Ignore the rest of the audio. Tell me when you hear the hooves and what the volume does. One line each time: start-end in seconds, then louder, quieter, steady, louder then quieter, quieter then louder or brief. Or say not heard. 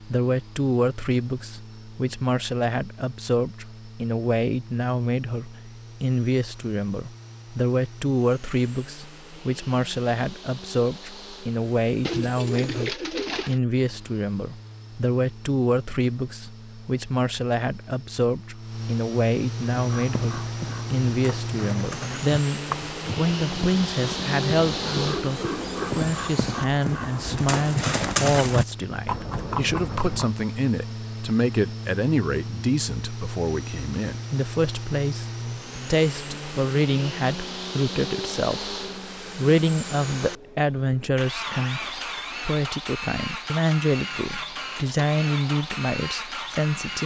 19.6-30.4 louder.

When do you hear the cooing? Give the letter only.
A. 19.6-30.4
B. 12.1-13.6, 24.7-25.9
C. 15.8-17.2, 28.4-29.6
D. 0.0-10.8
B.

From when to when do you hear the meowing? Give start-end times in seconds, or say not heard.
not heard.